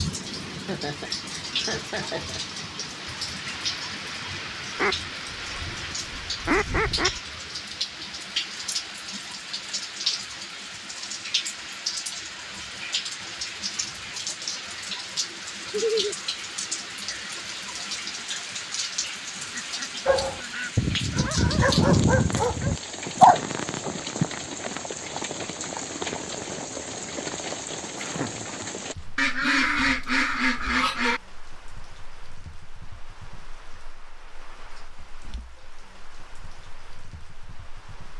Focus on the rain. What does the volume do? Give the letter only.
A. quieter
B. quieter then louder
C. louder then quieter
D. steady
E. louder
A.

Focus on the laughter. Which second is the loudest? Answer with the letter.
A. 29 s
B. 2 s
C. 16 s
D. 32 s
C.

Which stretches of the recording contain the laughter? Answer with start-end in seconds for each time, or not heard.
0.5-2.6, 15.7-16.1, 27.9-28.7.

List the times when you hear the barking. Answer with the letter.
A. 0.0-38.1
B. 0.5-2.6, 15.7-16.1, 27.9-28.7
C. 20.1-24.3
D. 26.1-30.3
C.